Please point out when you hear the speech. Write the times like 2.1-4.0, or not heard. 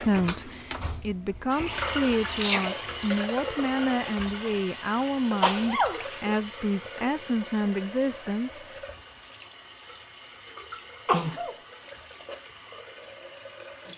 0.0-8.6.